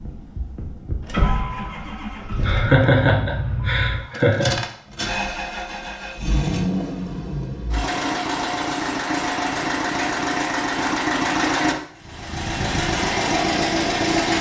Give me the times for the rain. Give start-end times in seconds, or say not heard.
not heard.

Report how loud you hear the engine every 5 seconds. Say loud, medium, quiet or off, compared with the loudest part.
medium, loud, loud.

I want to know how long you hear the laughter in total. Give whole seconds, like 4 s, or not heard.
2 s.